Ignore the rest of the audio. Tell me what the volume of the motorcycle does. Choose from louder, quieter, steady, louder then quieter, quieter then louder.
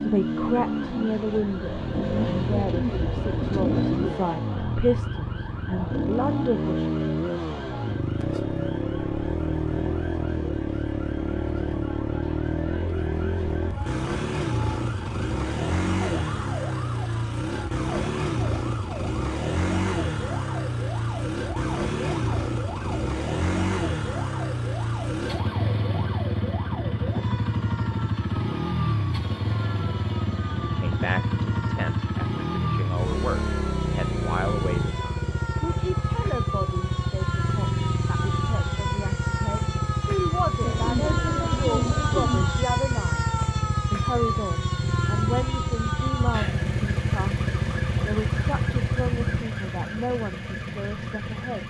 steady.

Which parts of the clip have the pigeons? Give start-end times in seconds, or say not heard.
2.5-4.2, 40.6-42.5.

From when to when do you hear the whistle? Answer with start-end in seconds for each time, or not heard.
not heard.